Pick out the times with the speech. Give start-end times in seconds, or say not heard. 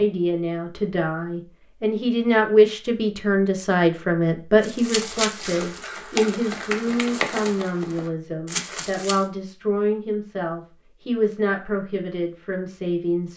0.0-13.3.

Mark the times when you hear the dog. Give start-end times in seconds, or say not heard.
not heard.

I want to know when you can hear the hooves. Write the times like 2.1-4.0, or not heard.
4.6-9.2.